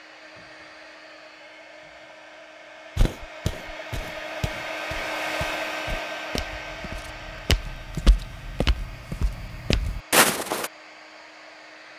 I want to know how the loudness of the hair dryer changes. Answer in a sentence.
The loudness of the hair dryer goes up, then down.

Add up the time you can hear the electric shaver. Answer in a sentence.
The electric shaver can't be heard in this clip.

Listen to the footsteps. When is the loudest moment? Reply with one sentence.
The loudest moment of the footsteps is at 10 seconds.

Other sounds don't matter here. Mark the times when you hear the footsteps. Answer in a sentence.
The footsteps can be heard from 3.0 to 10.7 s.